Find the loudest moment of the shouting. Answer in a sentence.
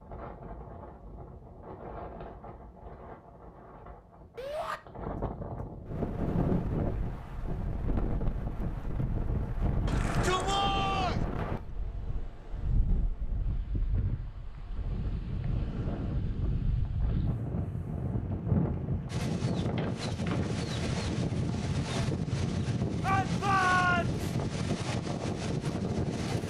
The volume of the shouting peaks at 24 seconds.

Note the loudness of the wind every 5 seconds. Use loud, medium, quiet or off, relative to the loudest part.
quiet, loud, medium, loud, loud, loud.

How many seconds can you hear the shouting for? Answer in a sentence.
The shouting can be heard for 3 seconds in total.